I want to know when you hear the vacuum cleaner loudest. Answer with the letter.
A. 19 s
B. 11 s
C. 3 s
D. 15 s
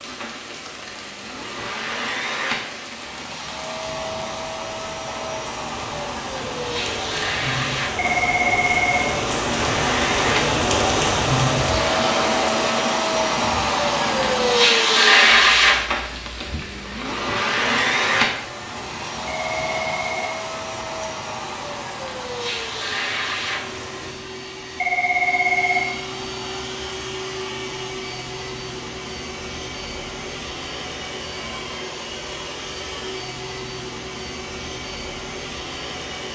D.